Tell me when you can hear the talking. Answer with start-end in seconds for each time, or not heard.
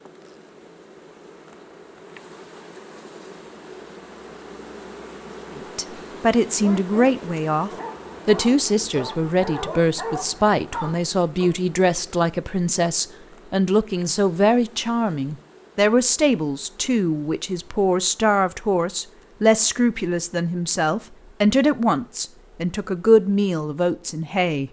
5.5-24.6.